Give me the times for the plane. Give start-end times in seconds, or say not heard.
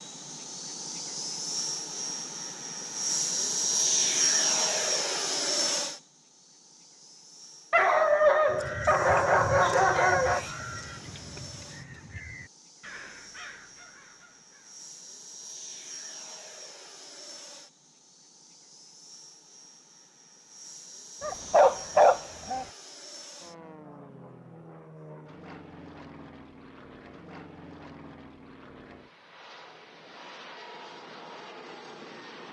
0.0-32.4.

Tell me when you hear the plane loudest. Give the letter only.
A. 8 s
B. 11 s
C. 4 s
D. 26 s
C.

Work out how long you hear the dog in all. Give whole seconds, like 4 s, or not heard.
4 s.